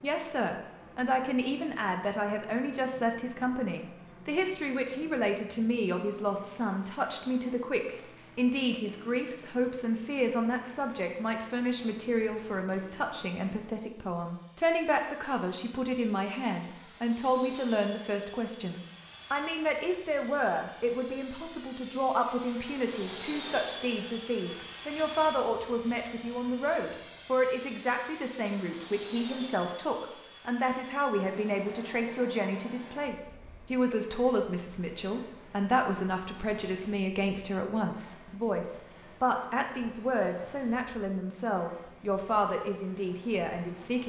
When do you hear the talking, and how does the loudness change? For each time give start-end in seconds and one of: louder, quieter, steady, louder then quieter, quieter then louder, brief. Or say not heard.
0.0-44.0 steady.